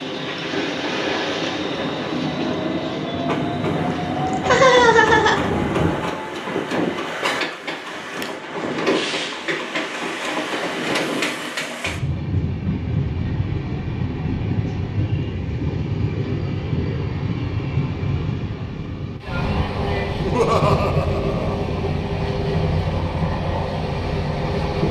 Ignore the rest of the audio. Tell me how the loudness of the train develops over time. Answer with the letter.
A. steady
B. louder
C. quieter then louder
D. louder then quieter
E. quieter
A.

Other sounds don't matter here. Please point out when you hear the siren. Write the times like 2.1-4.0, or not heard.
not heard.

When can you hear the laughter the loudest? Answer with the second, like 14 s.
5 s.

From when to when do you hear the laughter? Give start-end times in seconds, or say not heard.
3.8-5.5, 20.1-21.6.